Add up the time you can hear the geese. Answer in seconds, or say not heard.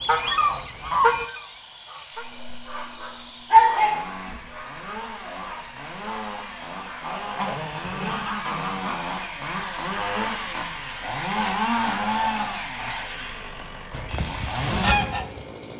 6 s.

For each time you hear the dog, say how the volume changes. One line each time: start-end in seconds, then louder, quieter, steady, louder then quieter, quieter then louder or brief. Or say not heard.
2.1-7.3 louder then quieter.